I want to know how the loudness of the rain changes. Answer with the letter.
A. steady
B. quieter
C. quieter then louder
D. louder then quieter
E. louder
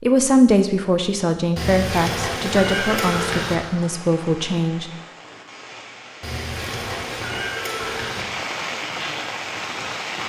E.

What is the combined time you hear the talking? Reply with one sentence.
You can hear the talking for 5 seconds altogether.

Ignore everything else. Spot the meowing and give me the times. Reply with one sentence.
You can hear the meowing from 1.6 to 3.5 s and from 6.2 to 8.2 s.